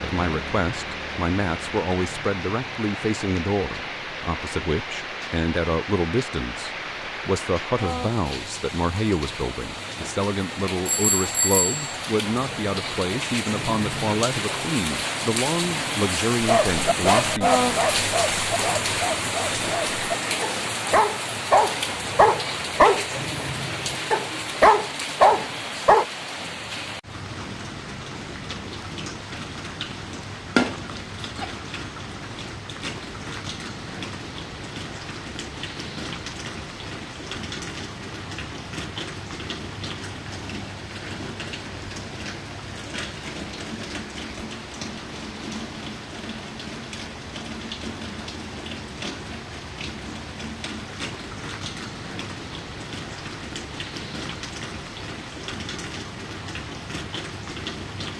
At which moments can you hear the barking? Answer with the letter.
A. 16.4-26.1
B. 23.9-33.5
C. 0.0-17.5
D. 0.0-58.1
A.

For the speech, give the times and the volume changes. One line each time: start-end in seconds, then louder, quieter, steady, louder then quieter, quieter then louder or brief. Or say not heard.
0.0-17.5 steady.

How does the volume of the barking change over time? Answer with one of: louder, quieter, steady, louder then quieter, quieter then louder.
quieter then louder.